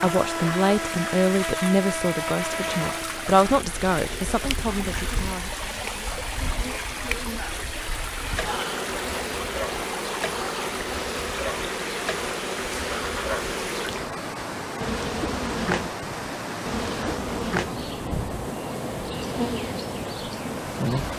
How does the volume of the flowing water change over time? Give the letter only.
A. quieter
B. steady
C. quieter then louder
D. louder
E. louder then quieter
B.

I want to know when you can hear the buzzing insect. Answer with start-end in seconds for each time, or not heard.
0.0-21.1.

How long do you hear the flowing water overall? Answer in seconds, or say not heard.
21 s.